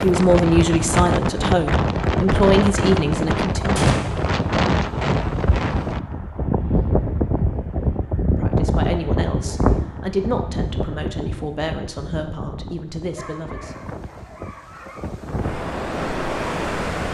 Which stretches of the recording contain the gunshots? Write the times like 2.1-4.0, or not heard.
3.8-4.2.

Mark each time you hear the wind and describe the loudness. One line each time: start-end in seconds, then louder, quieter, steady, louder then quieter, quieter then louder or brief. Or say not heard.
0.0-17.0 quieter.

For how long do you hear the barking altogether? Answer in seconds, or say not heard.
2 s.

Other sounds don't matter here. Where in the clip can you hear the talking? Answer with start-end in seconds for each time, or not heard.
0.0-3.8, 8.3-13.7.